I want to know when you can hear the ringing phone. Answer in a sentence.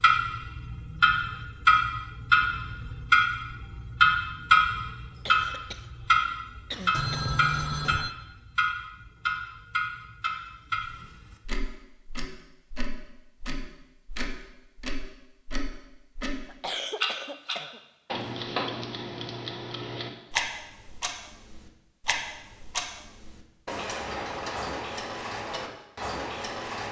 You can hear the ringing phone from 6.9 to 8.1 s.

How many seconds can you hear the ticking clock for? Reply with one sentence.
You can hear the ticking clock for 27 seconds altogether.